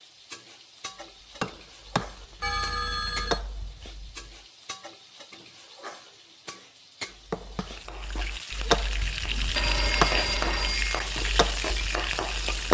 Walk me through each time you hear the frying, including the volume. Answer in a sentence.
The frying can be heard from 0.0 to 12.6 s, getting louder.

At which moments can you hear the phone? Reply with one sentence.
The phone can be heard from 2.4 to 3.4 s and from 9.5 to 11.0 s.